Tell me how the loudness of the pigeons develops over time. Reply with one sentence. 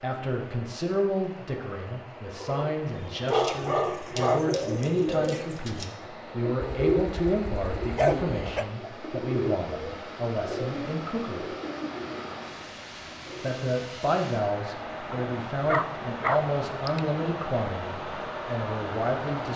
The volume of the pigeons goes down.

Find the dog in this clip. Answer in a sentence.
You can hear the dog from 2.4 to 4.4 s, from 6.6 to 8.7 s and from 15.1 to 17.0 s.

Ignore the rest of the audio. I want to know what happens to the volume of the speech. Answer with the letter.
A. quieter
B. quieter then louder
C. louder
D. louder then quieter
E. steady
E.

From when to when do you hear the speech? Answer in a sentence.
The speech can be heard from 0.0 to 11.4 s and from 13.4 to 19.5 s.